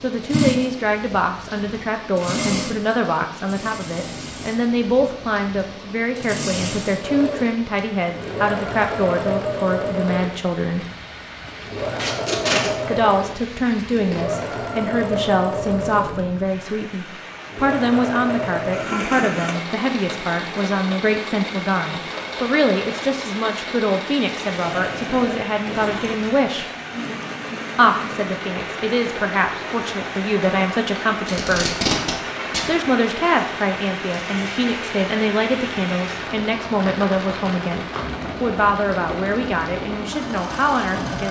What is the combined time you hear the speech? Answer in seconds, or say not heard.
37 s.